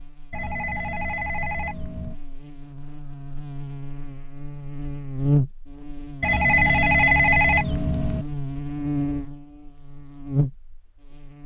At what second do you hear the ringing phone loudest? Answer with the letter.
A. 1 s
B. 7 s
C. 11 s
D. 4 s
B.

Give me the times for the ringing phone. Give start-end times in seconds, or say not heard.
0.3-2.1, 6.2-8.2.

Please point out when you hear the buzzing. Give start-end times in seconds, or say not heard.
0.0-11.4.